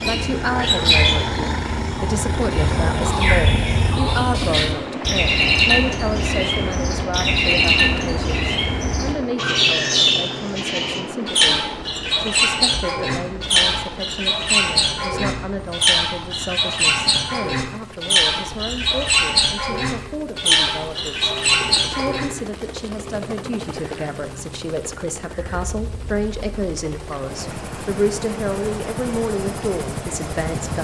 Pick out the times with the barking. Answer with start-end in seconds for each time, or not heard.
not heard.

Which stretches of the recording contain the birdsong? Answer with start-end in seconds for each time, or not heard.
0.0-22.3.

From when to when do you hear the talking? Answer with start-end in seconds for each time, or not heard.
0.0-30.7.